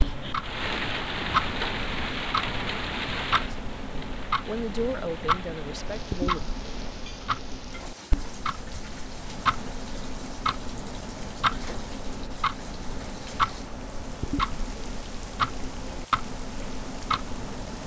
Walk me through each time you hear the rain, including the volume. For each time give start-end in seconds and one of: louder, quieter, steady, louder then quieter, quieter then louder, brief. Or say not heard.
0.0-17.8 quieter.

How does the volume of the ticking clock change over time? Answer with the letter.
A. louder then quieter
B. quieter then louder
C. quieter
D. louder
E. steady
E.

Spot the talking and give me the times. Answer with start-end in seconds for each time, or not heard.
3.9-6.4.